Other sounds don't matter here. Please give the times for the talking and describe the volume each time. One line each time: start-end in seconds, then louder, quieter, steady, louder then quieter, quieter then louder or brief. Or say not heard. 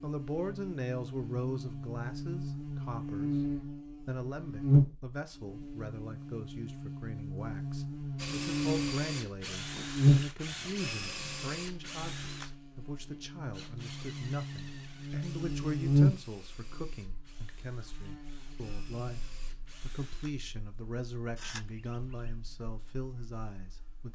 0.0-24.1 steady.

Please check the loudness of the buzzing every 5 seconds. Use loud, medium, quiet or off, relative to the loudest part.
loud, medium, loud, loud, quiet.